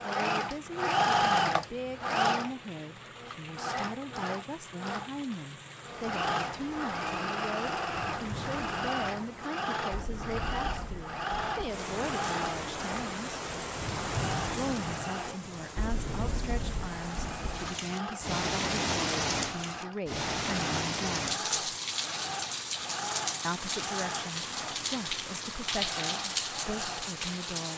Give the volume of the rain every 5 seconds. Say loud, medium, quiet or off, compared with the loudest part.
quiet, medium, loud, loud, loud, loud.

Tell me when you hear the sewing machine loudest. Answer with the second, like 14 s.
1 s.